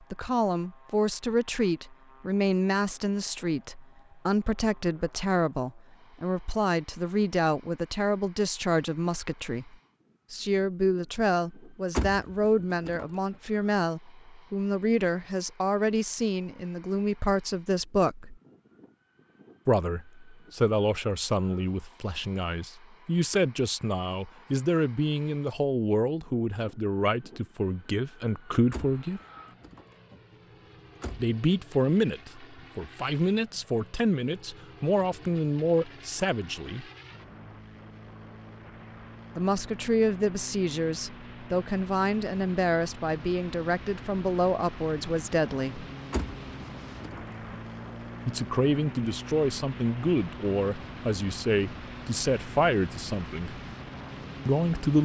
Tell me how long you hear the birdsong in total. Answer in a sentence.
You can't hear the birdsong here.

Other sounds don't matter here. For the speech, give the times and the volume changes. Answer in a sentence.
You can hear the speech from 0.1 to 18.4 s, at a steady volume; from 19.6 to 29.2 s, at a steady volume; from 31.1 to 36.9 s, at a steady volume; from 39.4 to 45.9 s, at a steady volume; from 48.2 to 53.6 s, at a steady volume; and briefly from 54.5 to 55.0 s.